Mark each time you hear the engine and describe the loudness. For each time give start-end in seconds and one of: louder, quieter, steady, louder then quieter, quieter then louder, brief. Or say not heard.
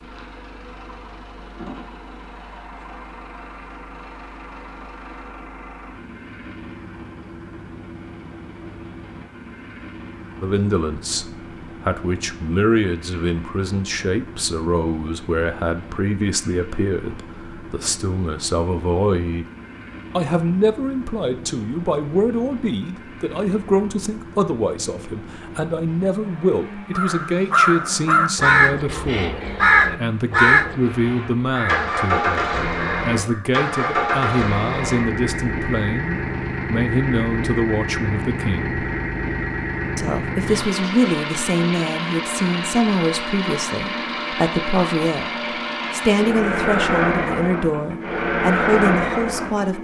0.0-49.8 louder.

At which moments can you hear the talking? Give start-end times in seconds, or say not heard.
10.4-19.4, 20.1-38.8, 40.0-45.3, 45.9-49.8.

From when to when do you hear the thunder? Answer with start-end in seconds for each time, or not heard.
not heard.